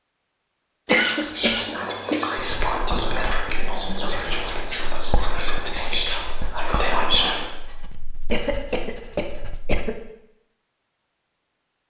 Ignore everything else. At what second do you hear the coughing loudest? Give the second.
1 s.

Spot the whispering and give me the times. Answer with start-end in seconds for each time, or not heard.
1.0-7.5.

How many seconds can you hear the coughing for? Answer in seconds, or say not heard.
3 s.